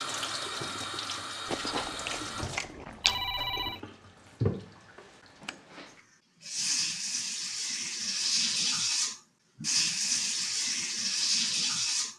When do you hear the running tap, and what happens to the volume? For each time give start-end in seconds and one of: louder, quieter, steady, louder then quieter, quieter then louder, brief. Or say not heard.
0.0-12.1 louder.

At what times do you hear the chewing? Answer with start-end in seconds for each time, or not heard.
1.4-3.2.